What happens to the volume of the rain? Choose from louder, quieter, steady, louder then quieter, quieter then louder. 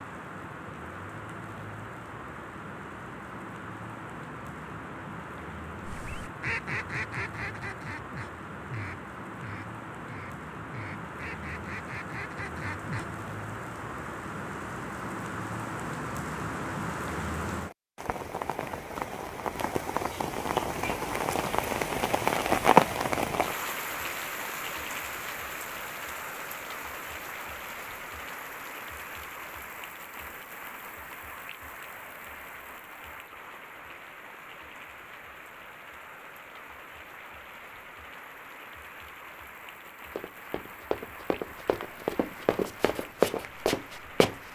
louder then quieter.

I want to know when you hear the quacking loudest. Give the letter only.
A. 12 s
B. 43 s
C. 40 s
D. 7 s
D.